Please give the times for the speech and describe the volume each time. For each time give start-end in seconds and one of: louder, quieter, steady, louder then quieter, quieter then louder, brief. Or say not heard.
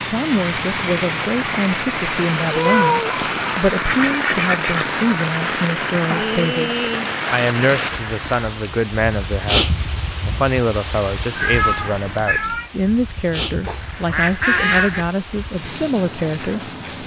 0.0-17.0 steady.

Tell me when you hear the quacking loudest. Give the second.
15 s.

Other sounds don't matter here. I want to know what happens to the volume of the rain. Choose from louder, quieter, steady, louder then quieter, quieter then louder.
quieter.